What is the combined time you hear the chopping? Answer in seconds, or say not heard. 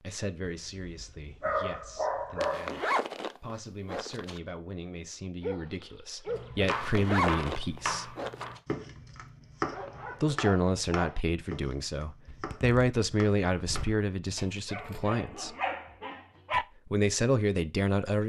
9 s.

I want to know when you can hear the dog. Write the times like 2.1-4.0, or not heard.
0.5-2.8, 5.4-6.8, 9.7-11.2, 14.7-16.6.